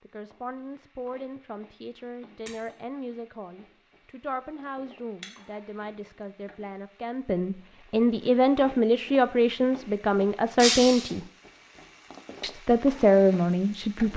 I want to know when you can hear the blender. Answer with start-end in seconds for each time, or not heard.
not heard.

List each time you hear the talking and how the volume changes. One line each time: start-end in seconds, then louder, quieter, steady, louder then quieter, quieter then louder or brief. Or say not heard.
0.0-11.2 louder
12.4-14.1 brief.